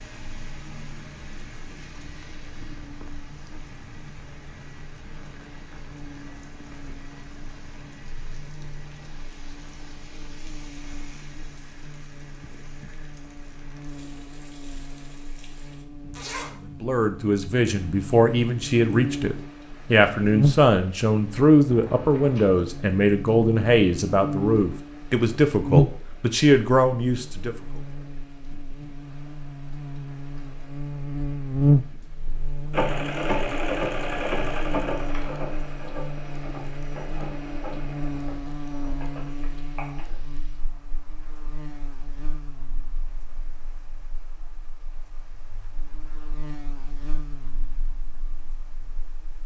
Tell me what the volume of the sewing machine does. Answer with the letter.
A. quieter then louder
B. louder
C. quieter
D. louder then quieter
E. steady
C.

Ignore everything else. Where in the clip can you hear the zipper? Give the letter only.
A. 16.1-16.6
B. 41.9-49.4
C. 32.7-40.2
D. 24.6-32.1
A.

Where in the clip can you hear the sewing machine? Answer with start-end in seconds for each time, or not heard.
32.7-40.2.